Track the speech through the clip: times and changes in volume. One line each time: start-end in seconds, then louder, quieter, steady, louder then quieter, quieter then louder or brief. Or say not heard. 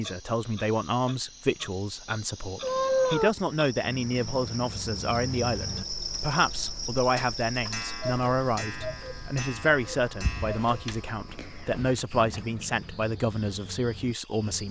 0.0-14.6 steady.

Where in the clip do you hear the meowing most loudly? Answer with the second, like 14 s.
3 s.